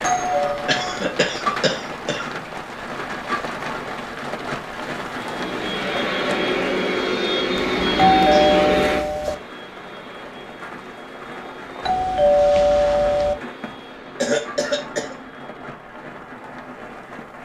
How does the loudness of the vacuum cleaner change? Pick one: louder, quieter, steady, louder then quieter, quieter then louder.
quieter.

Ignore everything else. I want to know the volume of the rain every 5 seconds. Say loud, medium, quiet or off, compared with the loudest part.
loud, loud, medium, medium.